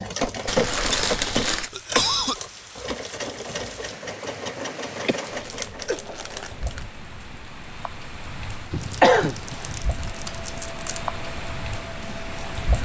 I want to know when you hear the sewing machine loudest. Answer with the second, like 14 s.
1 s.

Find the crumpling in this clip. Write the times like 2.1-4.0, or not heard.
0.2-1.7, 5.4-6.8, 8.8-11.1.